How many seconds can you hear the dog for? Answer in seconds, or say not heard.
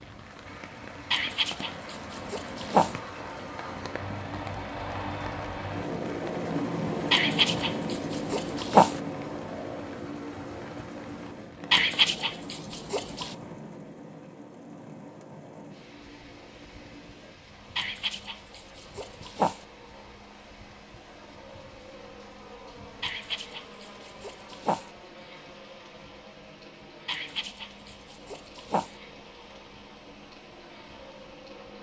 11 s.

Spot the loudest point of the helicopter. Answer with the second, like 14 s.
7 s.